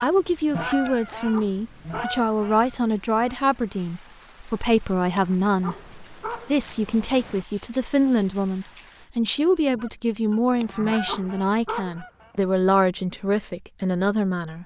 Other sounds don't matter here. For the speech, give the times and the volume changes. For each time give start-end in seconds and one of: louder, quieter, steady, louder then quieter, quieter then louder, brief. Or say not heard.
0.0-14.6 steady.